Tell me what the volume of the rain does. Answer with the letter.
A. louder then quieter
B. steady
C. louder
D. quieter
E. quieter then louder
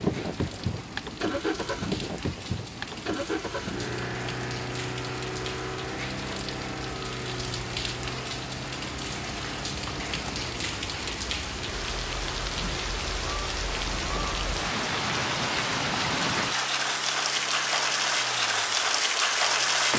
C.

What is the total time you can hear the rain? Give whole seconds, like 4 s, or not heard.
20 s.